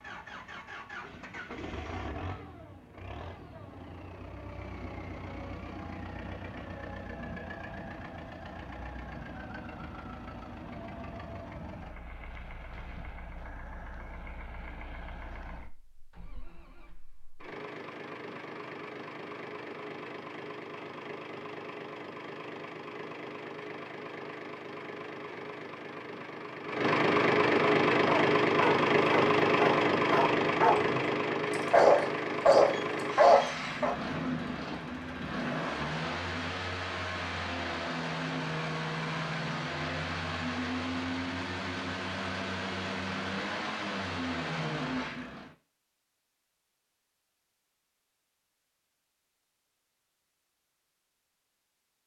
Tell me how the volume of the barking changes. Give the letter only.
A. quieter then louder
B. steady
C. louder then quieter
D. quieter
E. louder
E.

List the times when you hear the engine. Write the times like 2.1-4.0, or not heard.
0.0-45.5.